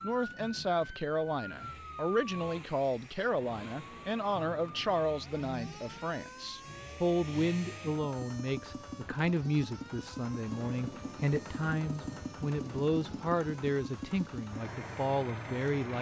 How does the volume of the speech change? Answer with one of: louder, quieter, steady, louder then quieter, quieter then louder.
steady.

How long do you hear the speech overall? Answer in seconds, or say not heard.
16 s.